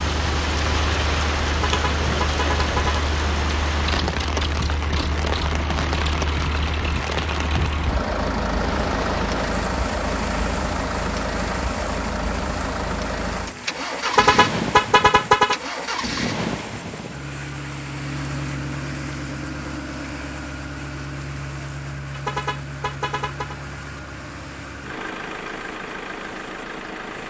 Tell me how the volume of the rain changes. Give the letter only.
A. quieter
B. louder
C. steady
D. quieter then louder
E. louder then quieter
A.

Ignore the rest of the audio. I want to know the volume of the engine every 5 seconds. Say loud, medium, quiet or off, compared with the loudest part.
loud, loud, loud, loud, medium, medium.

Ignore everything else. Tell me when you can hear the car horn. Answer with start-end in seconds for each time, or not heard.
1.5-3.0, 14.1-15.6, 22.1-23.6.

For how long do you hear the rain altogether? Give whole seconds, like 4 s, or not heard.
27 s.